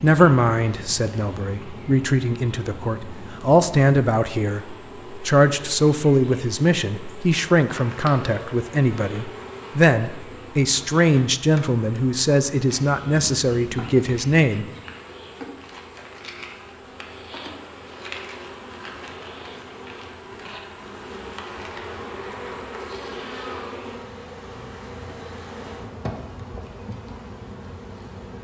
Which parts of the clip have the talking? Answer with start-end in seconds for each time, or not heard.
0.0-14.7.